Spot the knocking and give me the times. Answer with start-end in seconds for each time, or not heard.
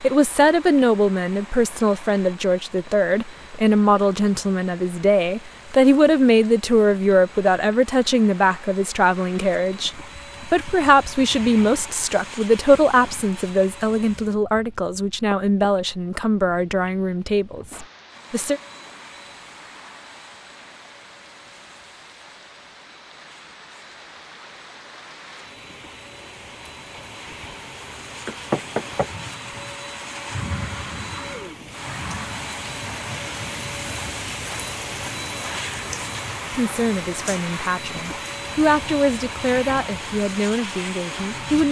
28.2-29.1.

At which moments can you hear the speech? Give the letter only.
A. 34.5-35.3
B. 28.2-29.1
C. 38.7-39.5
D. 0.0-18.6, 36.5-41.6
D.